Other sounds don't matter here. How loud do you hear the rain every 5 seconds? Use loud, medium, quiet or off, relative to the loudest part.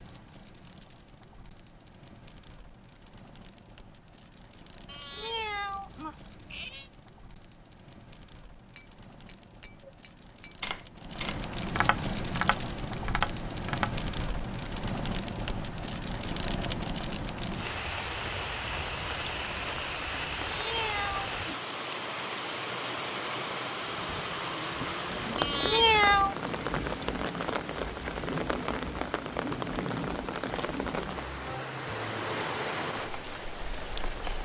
quiet, quiet, loud, loud, loud, loud, loud.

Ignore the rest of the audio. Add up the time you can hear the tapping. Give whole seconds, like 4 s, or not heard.
5 s.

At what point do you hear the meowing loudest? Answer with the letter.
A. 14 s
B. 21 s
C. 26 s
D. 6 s
C.